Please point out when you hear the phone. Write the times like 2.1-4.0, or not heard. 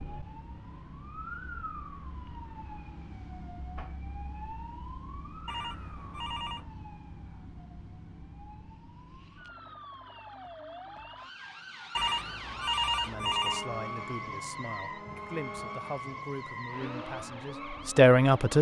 5.5-6.7, 11.9-13.7.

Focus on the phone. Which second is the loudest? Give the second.
13 s.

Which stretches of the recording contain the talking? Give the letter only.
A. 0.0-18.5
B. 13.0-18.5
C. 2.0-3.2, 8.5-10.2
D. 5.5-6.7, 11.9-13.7
B.